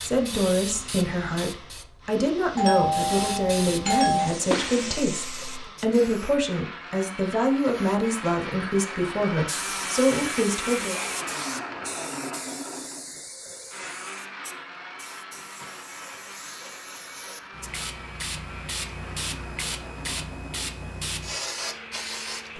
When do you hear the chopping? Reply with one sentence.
The chopping can't be heard in this clip.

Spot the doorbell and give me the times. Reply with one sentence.
The doorbell can be heard from 2.5 to 4.2 s.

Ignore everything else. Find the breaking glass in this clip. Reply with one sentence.
The breaking glass can be heard from 4.5 to 5.1 s.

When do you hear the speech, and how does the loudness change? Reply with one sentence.
The speech can be heard from 0.0 to 10.9 s, at a steady volume.